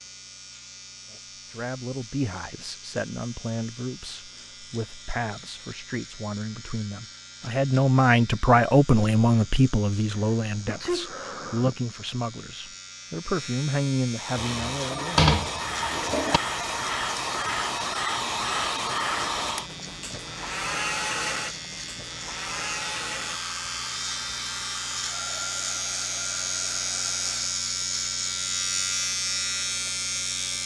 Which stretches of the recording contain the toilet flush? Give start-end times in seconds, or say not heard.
14.4-16.4.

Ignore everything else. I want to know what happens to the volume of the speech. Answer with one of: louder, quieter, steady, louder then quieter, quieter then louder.
louder then quieter.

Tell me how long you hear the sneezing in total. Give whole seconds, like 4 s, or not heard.
2 s.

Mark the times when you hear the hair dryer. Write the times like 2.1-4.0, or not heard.
14.2-27.6.